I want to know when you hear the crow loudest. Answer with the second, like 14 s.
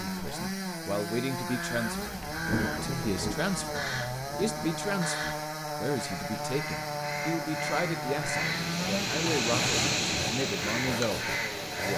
10 s.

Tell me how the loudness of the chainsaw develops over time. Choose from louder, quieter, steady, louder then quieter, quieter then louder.
steady.